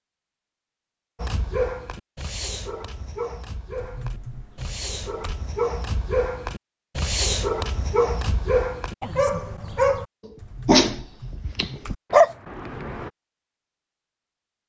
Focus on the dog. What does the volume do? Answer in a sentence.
The volume of the dog goes up.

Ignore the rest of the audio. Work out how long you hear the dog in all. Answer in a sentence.
You can hear the dog for 12 seconds altogether.